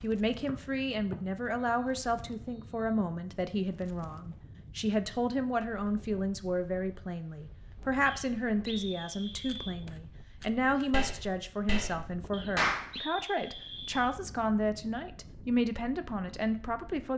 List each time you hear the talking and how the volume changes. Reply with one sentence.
You can hear the talking from 0.0 to 17.1 s, at a steady volume.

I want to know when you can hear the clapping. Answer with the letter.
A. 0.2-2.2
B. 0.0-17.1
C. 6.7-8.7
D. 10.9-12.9
D.